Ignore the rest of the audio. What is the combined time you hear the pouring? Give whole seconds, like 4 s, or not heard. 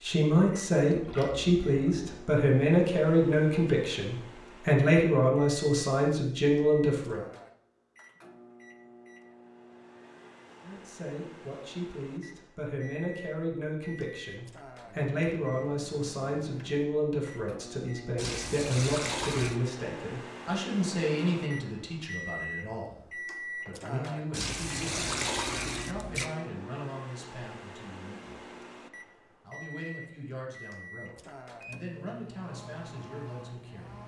5 s.